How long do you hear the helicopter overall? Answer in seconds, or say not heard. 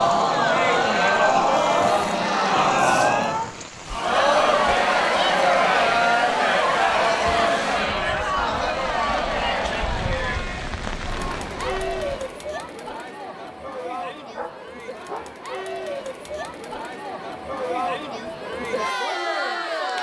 not heard.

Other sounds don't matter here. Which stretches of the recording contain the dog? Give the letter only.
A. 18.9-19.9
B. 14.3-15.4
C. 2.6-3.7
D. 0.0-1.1
B.